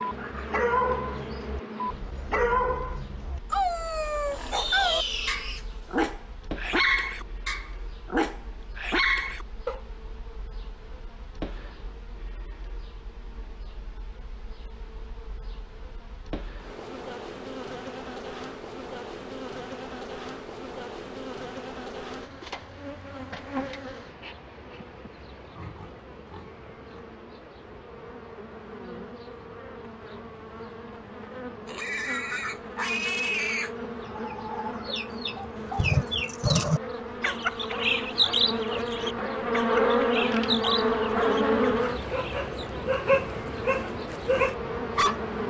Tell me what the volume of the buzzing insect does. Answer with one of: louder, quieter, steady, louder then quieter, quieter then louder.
louder.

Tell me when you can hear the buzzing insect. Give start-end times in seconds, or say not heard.
0.0-45.4.